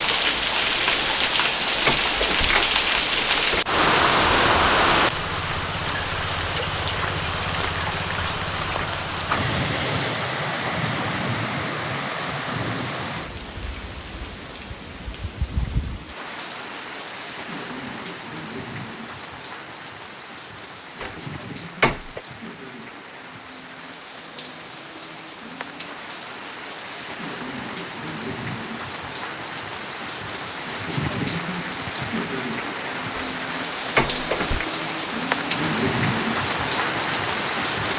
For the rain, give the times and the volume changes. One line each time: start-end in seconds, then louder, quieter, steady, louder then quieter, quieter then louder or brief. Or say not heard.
0.0-37.9 quieter then louder.